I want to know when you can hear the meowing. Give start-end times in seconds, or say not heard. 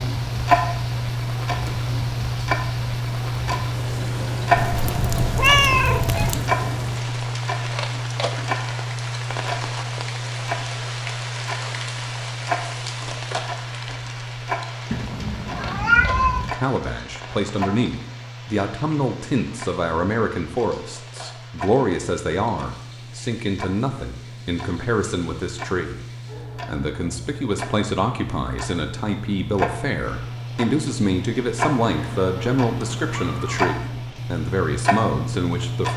4.5-6.5, 14.9-16.5, 31.9-33.8.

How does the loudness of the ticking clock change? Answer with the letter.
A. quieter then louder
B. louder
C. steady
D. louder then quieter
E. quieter
A.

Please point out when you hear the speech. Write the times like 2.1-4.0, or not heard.
16.4-26.1, 26.6-35.9.